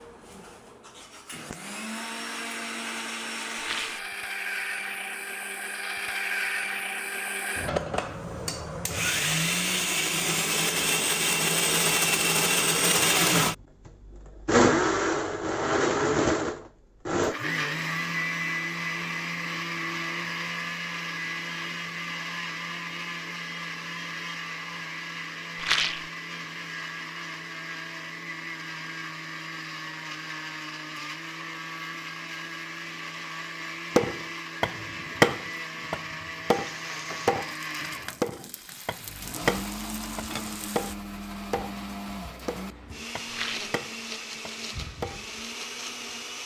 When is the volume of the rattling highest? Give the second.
26 s.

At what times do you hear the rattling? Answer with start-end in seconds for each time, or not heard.
3.5-4.0, 25.6-26.1, 43.2-43.8.